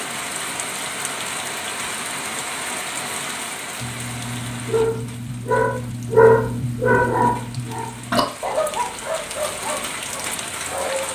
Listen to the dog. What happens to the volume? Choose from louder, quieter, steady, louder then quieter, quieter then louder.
louder then quieter.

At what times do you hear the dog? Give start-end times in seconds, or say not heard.
3.8-11.1.